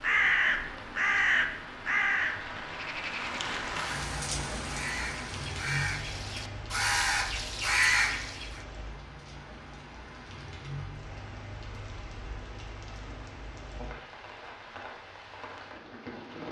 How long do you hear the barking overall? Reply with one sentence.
The barking can't be heard in this clip.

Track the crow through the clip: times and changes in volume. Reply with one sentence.
The crow can be heard from 0.0 to 8.6 s, getting quieter then louder.